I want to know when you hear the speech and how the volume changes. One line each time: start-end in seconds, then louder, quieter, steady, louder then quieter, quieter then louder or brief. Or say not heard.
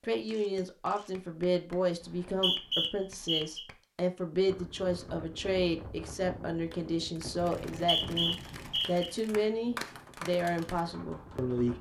0.0-11.7 steady.